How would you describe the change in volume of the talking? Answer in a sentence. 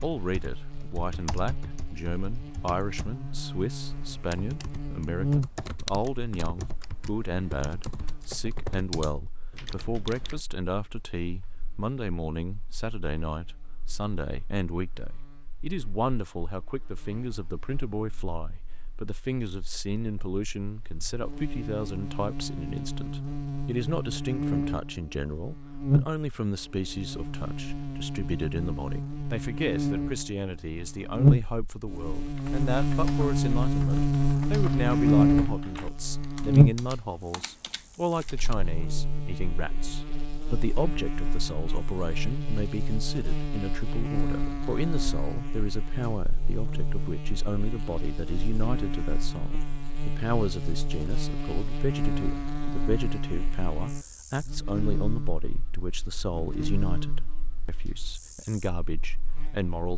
The loudness of the talking stays about the same.